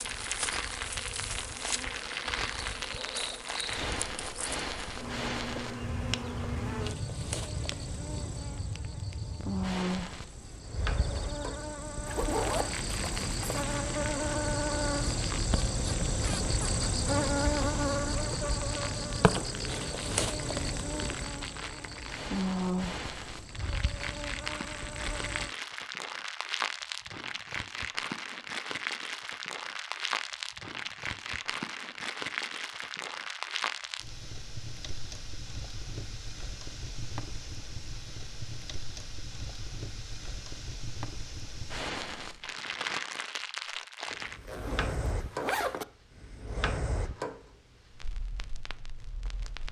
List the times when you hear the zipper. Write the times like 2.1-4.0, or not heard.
12.1-13.7, 44.1-45.9.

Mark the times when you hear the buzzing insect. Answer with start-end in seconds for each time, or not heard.
0.0-25.6.